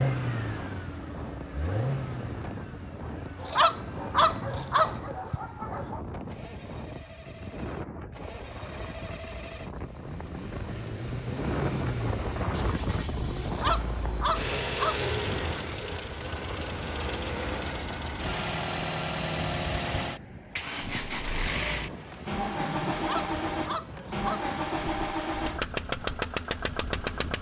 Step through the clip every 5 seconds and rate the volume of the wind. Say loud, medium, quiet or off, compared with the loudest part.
medium, medium, loud, medium, medium, medium.